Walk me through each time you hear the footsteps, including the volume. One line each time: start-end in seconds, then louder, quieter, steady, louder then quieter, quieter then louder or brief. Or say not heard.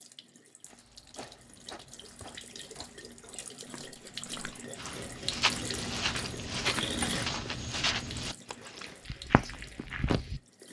0.7-10.4 louder then quieter.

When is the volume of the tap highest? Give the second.
7 s.